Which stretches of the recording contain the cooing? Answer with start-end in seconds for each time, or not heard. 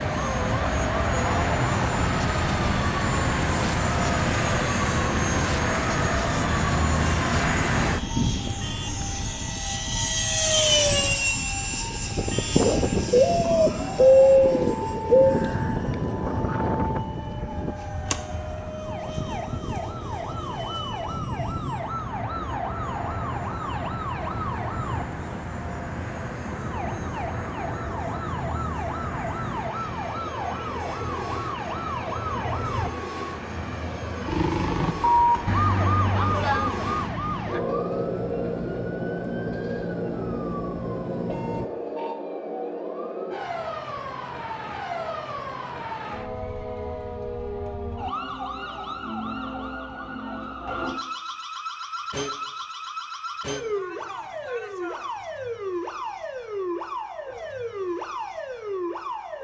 13.1-15.3.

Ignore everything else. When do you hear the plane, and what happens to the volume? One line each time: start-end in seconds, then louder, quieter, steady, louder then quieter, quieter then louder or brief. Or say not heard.
0.0-41.7 quieter.